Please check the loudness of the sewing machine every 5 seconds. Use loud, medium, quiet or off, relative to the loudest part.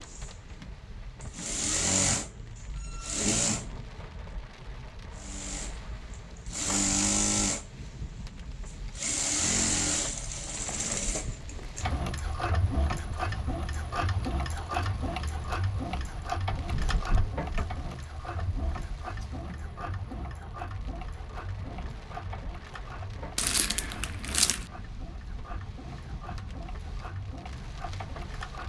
loud, loud, medium, medium, quiet, quiet.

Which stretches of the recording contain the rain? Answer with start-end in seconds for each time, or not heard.
0.0-28.6.